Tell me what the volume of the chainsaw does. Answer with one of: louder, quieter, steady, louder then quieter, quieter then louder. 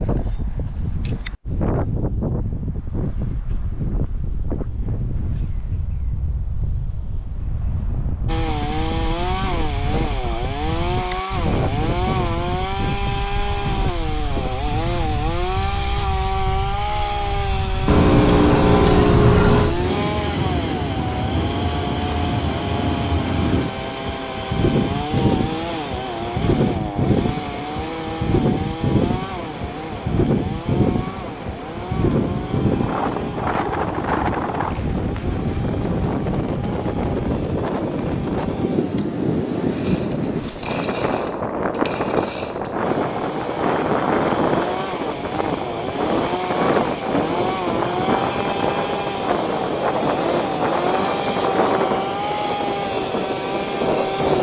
quieter then louder.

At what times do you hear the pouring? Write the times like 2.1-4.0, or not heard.
17.9-19.8, 32.1-33.5.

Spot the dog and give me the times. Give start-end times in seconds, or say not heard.
not heard.